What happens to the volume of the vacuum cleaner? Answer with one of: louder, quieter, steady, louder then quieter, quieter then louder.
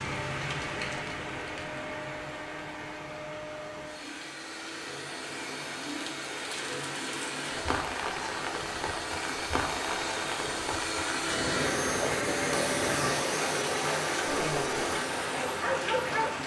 louder.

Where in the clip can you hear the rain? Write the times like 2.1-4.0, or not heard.
0.0-16.4.